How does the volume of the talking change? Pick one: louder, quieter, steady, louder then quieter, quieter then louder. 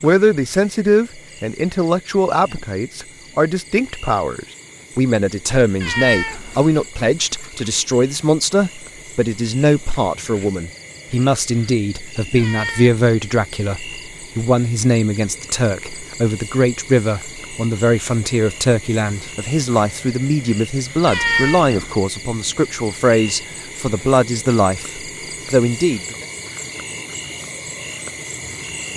steady.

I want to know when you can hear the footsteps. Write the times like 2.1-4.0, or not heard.
not heard.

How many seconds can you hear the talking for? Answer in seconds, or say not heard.
26 s.